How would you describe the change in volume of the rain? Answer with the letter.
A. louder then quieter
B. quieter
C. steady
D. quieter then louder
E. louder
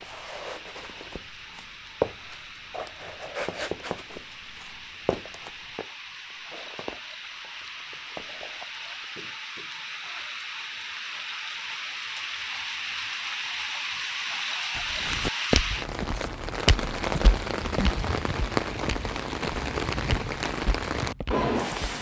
E.